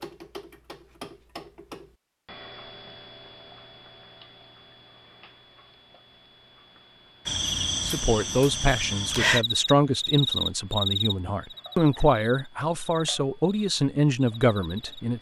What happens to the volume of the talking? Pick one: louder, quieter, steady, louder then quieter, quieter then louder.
steady.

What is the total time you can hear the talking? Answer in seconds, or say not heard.
7 s.